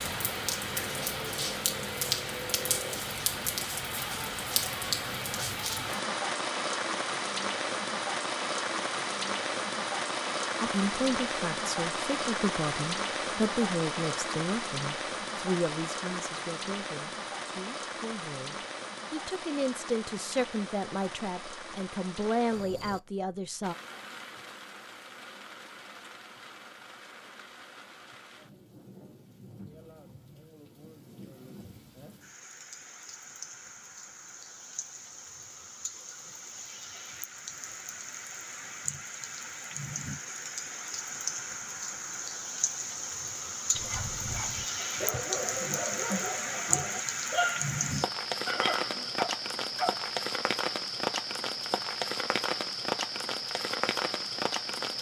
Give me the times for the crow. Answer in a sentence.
You can't hear the crow here.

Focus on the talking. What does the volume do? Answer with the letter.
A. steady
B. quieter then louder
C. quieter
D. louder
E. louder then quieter
B.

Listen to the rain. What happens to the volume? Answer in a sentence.
The volume of the rain goes down, then up.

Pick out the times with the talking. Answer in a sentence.
You can hear the talking from 10.6 to 23.8 s.